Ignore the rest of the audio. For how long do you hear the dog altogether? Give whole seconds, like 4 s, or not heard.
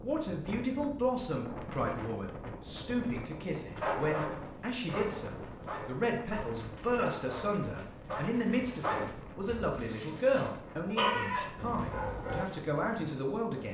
9 s.